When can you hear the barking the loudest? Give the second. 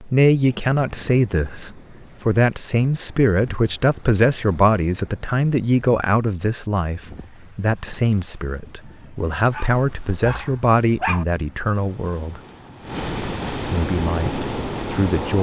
11 s.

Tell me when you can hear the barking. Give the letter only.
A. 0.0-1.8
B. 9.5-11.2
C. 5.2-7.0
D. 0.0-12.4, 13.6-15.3
B.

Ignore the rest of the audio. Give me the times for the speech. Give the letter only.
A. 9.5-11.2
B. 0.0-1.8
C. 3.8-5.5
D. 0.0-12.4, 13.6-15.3
D.